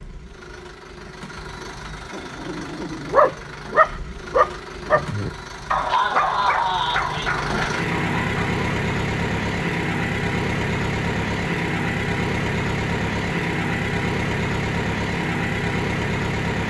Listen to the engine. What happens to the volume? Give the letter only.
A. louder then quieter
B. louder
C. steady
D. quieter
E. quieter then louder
B.